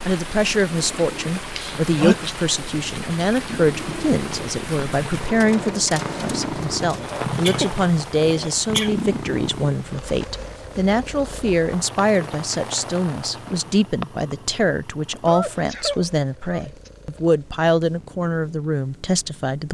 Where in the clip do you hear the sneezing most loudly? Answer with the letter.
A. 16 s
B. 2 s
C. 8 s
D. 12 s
B.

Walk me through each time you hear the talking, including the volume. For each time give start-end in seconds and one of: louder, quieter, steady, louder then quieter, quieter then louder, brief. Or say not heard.
0.1-19.6 steady.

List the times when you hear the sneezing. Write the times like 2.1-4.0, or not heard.
1.6-2.4, 7.0-8.9, 15.2-16.9.